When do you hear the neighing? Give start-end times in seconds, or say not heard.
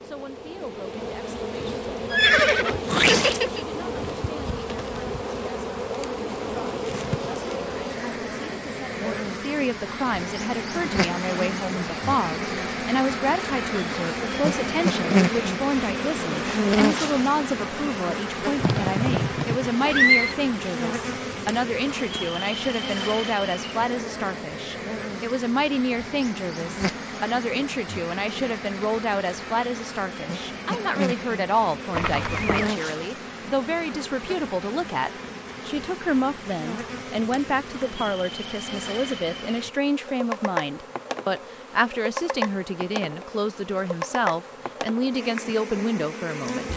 2.1-3.6, 18.6-20.4, 31.9-32.7.